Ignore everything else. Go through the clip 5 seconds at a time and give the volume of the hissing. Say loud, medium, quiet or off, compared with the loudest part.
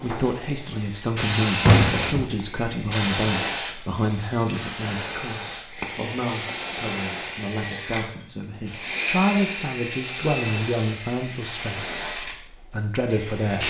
loud, medium, medium.